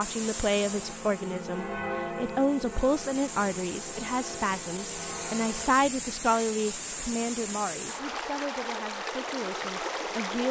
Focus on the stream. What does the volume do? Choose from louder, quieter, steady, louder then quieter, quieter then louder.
louder.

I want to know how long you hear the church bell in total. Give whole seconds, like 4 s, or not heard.
6 s.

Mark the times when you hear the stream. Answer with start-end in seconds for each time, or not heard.
0.0-10.4.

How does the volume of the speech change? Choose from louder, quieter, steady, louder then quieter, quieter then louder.
quieter.